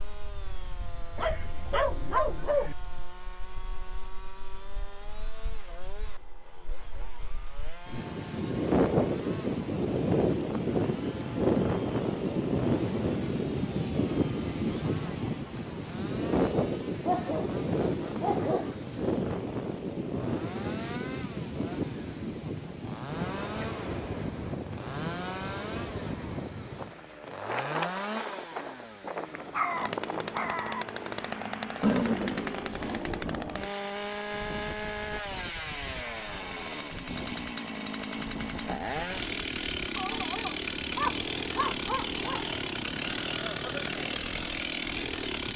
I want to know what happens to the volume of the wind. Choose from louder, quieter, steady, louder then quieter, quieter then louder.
louder then quieter.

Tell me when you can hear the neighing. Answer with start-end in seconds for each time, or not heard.
31.8-33.1.